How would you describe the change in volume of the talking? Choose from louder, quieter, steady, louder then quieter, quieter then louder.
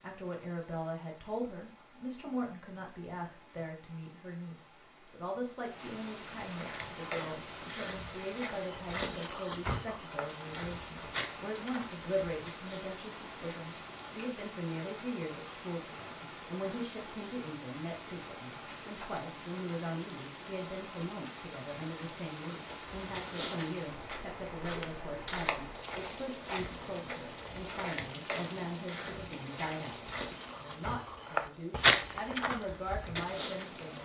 steady.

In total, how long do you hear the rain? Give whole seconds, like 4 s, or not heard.
34 s.